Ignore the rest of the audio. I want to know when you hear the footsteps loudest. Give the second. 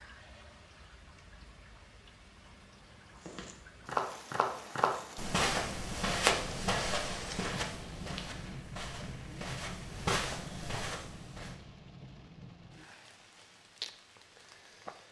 6 s.